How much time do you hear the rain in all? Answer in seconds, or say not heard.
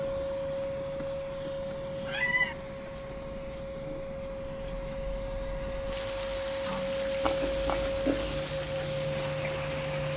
10 s.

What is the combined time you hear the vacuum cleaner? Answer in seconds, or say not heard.
10 s.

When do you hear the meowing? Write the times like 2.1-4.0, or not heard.
0.6-2.5, 7.2-8.5.